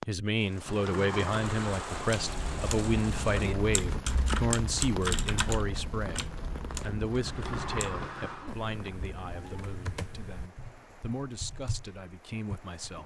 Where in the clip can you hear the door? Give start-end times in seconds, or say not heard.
0.7-2.0, 7.2-8.6.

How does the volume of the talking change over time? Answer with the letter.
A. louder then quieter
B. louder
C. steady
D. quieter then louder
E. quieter
E.